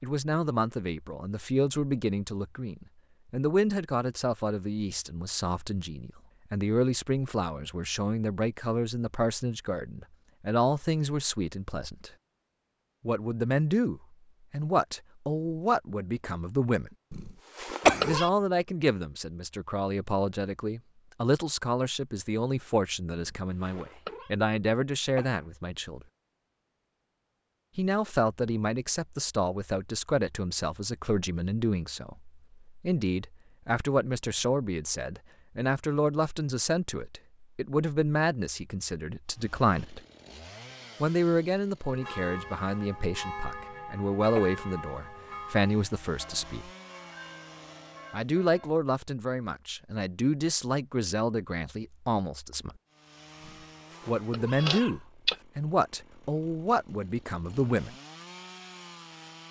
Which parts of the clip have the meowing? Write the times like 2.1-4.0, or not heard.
17.1-18.3, 23.1-24.3, 53.5-55.4.